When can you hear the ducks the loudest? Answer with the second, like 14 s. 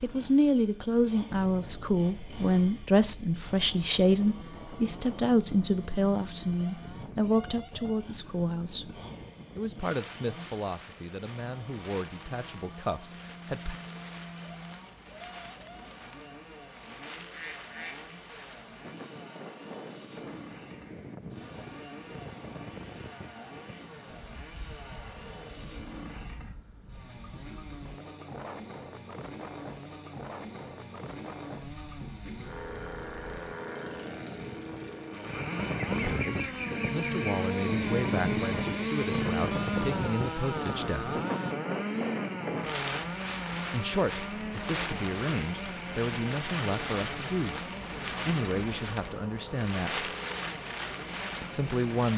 36 s.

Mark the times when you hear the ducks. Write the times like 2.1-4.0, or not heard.
17.1-18.0, 35.8-37.3.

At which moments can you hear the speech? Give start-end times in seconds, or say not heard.
0.0-13.8, 36.0-41.2, 43.7-47.6, 48.2-50.1, 51.4-52.1.